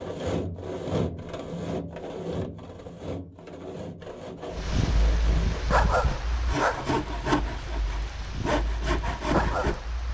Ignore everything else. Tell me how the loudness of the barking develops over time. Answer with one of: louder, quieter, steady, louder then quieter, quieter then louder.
quieter then louder.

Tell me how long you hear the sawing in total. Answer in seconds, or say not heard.
10 s.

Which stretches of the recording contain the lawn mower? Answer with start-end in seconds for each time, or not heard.
not heard.